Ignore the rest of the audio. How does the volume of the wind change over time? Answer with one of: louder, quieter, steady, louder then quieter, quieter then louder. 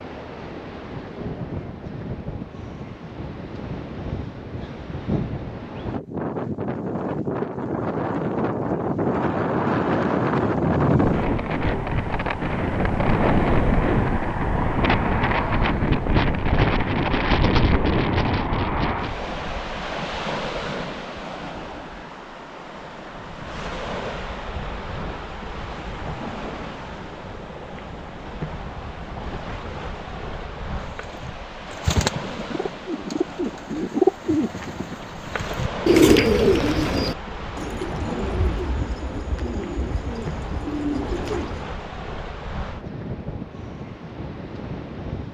louder then quieter.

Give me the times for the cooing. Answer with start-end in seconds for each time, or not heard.
30.9-41.6.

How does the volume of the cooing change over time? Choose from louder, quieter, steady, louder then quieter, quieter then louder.
louder then quieter.